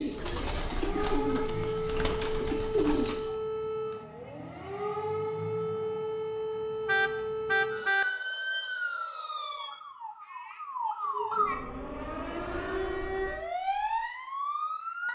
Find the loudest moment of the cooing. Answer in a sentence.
The volume of the cooing peaks at 3 seconds.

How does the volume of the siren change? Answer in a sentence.
The loudness of the siren stays about the same.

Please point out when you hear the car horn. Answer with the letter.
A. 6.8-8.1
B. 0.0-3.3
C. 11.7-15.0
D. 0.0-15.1
A.